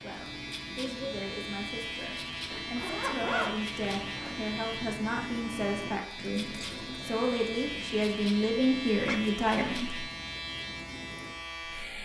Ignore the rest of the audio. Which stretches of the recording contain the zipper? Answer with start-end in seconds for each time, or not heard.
2.5-4.4, 8.6-9.3.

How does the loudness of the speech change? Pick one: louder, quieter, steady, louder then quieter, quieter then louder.
louder.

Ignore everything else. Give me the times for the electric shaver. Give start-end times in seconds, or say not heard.
0.0-12.0.